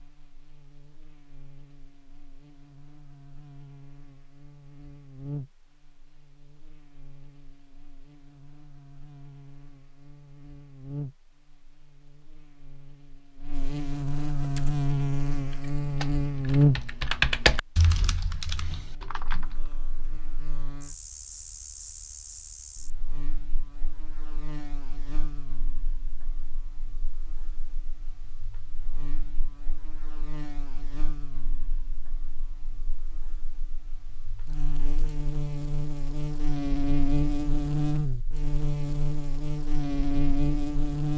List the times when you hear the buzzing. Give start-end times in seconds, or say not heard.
0.0-41.1.